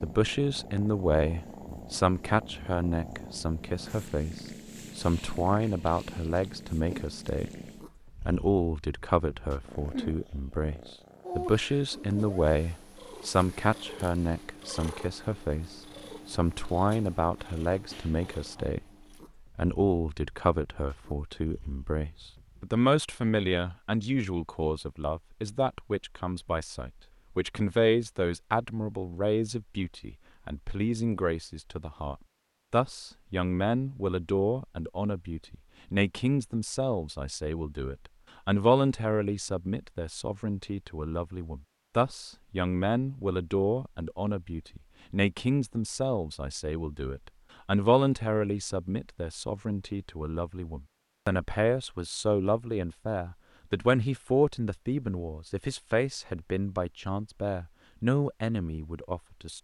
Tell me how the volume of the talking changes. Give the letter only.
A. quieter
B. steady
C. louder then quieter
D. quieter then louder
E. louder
B.